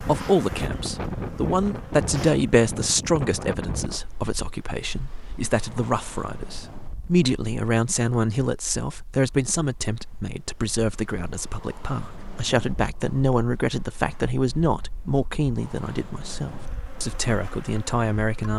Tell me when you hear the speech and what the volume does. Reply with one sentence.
The speech can be heard from 0.0 to 18.5 s, at a steady volume.